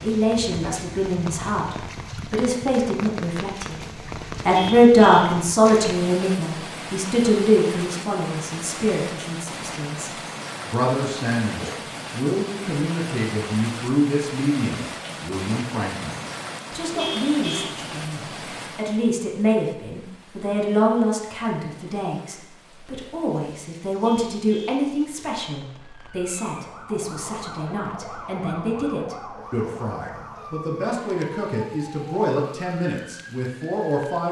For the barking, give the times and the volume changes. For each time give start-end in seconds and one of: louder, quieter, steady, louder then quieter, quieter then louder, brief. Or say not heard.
not heard.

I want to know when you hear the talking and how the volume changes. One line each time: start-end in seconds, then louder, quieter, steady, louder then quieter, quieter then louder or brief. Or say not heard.
0.0-34.2 quieter.